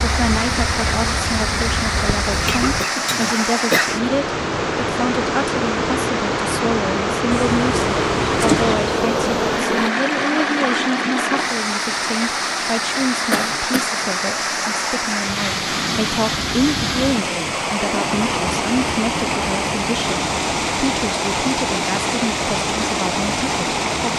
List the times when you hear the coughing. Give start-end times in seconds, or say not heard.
2.3-4.0, 13.3-13.9.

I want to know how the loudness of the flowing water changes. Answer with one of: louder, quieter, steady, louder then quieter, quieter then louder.
steady.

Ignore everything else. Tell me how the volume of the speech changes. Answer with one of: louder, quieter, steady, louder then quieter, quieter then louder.
steady.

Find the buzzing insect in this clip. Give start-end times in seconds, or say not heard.
0.0-2.9, 7.3-9.9.